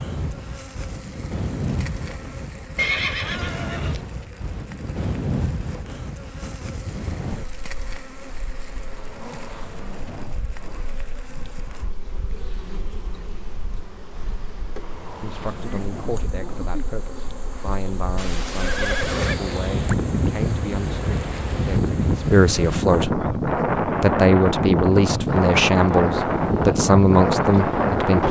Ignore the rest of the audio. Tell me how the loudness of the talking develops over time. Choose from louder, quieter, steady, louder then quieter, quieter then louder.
louder.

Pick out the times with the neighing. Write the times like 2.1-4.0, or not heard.
2.8-4.0, 18.1-19.4.